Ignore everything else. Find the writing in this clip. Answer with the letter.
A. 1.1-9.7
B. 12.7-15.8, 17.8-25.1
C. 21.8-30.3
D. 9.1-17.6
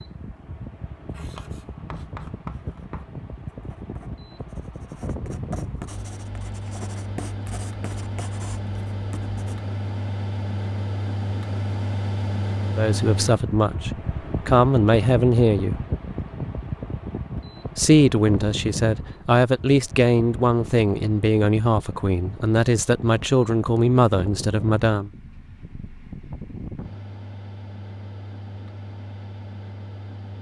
A.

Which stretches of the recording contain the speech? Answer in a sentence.
You can hear the speech from 12.7 to 15.8 s and from 17.8 to 25.1 s.